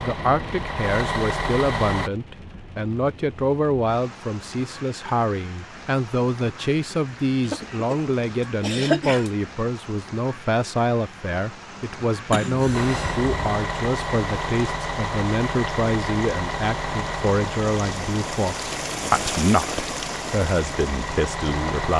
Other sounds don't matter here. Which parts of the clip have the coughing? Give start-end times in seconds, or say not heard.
7.4-9.3, 12.3-13.4.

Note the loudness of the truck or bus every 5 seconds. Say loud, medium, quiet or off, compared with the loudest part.
loud, off, loud, loud, loud.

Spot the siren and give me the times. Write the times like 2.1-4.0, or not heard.
not heard.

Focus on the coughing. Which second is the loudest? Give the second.
9 s.